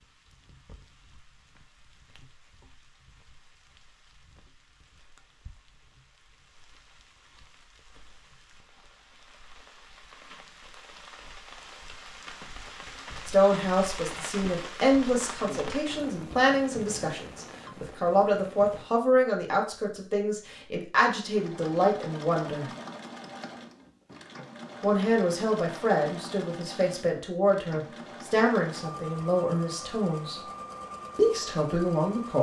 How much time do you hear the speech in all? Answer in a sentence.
You can hear the speech for 16 seconds altogether.